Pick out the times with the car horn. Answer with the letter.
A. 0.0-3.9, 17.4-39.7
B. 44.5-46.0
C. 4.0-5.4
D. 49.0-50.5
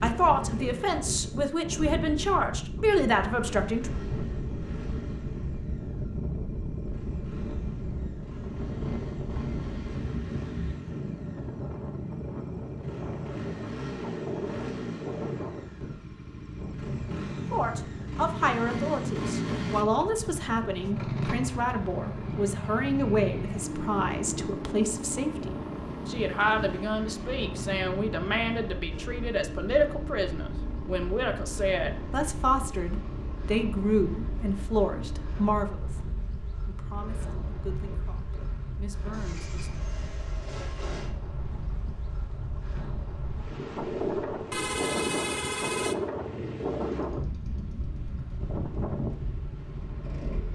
B.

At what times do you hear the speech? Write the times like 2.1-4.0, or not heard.
0.0-3.9, 17.4-39.7.